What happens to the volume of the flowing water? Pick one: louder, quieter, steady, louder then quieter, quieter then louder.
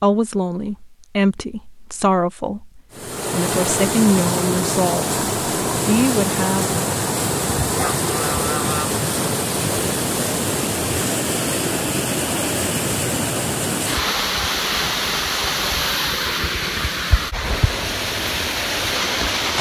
steady.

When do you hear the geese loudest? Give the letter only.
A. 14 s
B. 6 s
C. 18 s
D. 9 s
D.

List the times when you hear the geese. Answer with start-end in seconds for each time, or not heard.
7.4-9.0.